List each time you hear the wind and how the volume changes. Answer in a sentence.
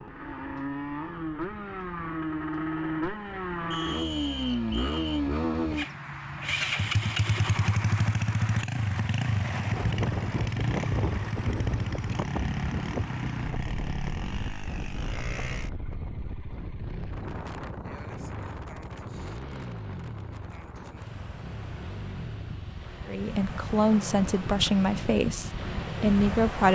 The wind can be heard from 9.7 to 26.7 s, getting quieter then louder.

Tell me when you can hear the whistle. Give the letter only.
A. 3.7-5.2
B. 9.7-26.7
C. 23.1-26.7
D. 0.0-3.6
A.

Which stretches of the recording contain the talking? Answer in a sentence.
The talking can be heard from 23.1 to 26.7 s.